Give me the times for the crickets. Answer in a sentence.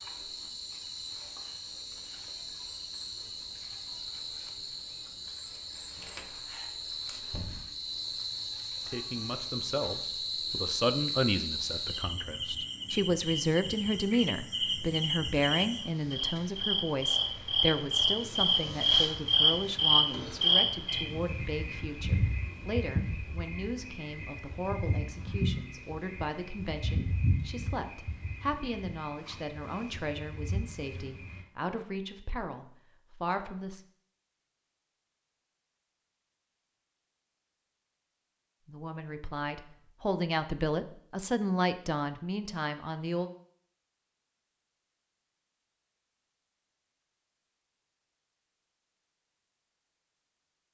You can hear the crickets from 0.0 to 31.4 s.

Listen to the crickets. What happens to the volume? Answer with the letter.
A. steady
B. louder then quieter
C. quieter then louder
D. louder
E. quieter
B.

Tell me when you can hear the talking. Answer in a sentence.
You can hear the talking from 8.8 to 33.8 s and from 38.6 to 43.3 s.